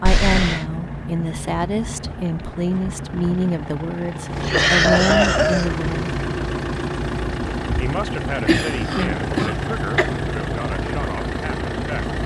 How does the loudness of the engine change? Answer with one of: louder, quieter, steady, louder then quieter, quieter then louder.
louder.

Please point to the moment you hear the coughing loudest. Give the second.
5 s.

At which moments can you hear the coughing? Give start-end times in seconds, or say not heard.
0.1-0.7, 4.4-5.8, 8.4-10.1.